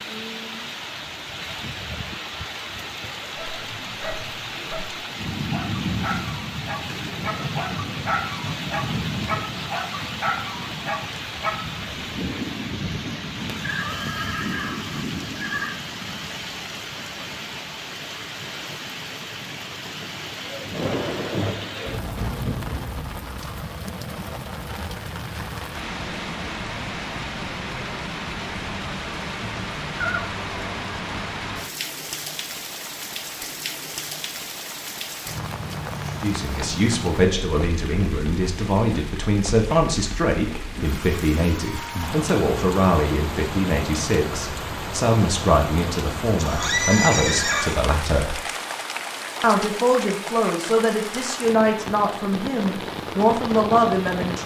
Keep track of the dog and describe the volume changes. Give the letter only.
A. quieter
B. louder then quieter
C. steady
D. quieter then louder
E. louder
E.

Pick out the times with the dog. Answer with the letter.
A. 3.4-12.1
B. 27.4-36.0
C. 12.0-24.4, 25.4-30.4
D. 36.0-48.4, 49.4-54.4
A.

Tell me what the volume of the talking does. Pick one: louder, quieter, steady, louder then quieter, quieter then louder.
steady.